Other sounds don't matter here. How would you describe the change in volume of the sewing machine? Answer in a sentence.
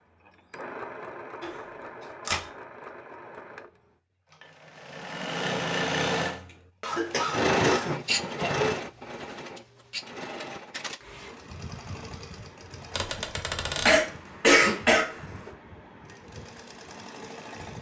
The volume of the sewing machine goes up, then down.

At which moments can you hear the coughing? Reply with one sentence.
You can hear the coughing from 1.4 to 2.1 s, from 6.8 to 8.5 s and from 13.8 to 15.5 s.